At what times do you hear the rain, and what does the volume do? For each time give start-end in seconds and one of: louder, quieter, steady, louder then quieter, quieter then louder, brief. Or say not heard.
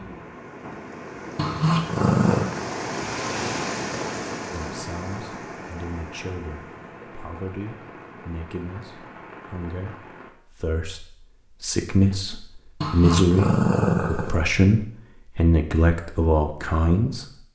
0.0-10.3 louder then quieter.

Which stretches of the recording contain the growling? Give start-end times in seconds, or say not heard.
1.4-2.5, 12.8-14.3.